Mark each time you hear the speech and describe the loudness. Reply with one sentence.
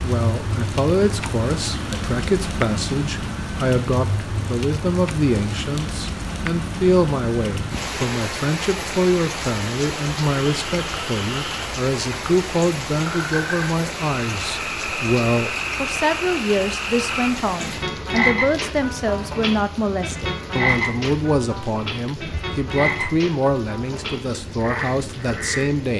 The speech can be heard from 0.0 to 25.9 s, at a steady volume.